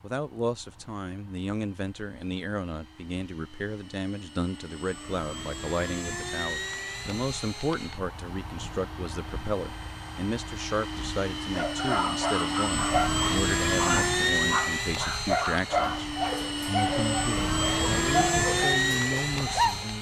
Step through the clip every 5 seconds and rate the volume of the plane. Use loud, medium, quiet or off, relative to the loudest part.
quiet, medium, loud, loud.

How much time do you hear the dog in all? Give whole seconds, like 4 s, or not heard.
8 s.